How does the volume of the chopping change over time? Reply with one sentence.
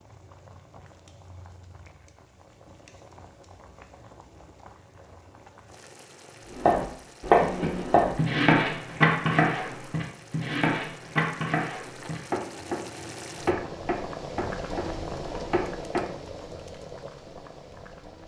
The loudness of the chopping goes down.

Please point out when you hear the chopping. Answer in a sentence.
The chopping can be heard from 6.5 to 16.1 s.